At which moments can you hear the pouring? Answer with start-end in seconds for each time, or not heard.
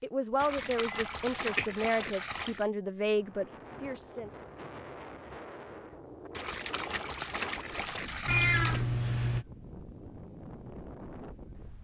0.3-2.7, 6.3-8.8.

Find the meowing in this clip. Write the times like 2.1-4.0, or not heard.
0.8-1.6, 8.2-9.4.